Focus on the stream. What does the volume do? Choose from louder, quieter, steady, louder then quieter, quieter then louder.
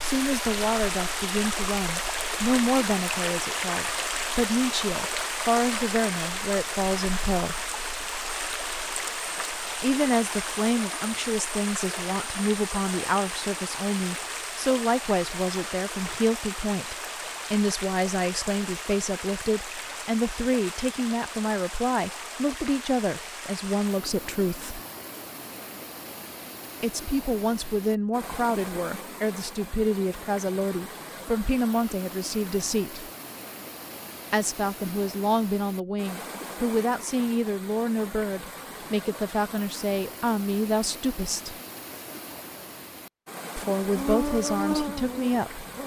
quieter.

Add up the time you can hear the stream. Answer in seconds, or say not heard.
46 s.